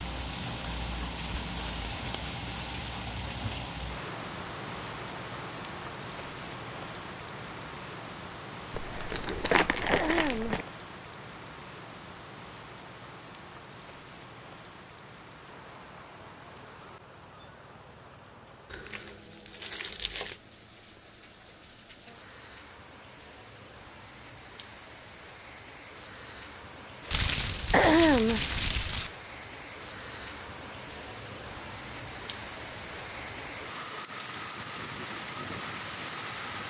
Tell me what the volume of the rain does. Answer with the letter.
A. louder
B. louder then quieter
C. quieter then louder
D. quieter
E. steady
C.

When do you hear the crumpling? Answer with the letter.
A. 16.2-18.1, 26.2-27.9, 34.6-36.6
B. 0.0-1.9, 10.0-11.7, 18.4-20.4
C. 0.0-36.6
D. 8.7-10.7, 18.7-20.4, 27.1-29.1
D.